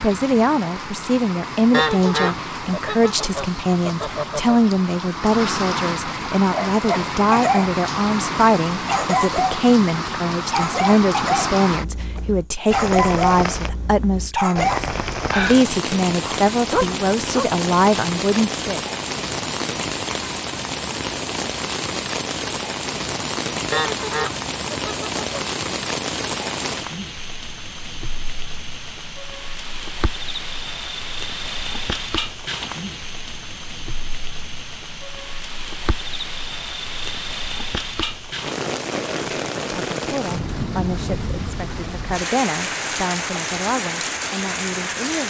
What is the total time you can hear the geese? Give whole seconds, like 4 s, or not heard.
5 s.